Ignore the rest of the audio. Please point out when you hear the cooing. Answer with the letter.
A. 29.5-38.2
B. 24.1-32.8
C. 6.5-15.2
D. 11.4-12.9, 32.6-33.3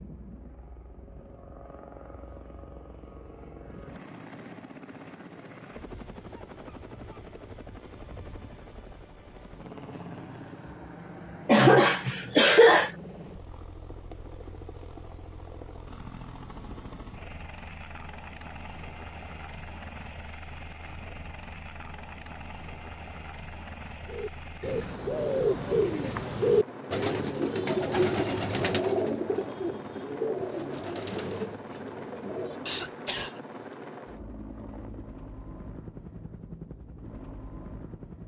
B.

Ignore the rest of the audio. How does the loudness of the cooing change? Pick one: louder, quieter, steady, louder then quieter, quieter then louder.
quieter.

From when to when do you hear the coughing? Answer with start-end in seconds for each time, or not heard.
11.4-12.9, 32.6-33.3.